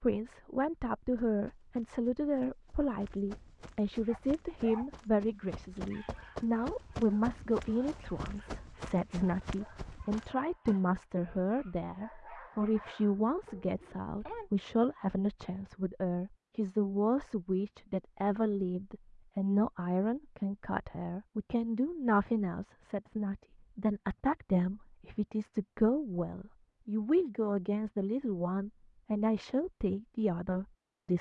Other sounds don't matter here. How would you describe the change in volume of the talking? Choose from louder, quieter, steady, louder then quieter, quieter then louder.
steady.